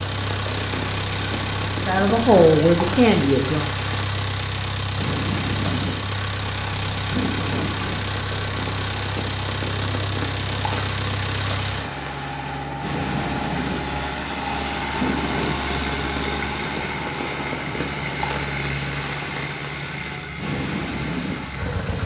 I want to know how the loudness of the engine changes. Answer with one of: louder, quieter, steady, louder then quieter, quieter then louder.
steady.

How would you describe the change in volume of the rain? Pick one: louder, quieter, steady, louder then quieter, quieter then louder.
steady.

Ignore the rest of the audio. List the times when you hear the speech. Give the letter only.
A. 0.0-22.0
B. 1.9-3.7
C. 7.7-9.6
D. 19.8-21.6
B.